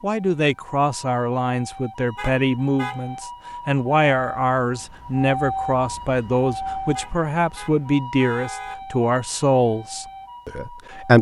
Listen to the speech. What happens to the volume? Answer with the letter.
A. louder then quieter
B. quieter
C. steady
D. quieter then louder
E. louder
C.